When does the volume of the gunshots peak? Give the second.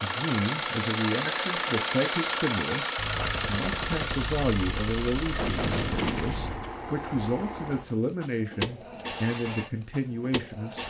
6 s.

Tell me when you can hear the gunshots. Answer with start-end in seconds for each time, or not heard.
3.0-6.7.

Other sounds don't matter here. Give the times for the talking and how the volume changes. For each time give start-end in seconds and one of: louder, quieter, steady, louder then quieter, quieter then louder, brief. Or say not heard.
0.0-10.8 steady.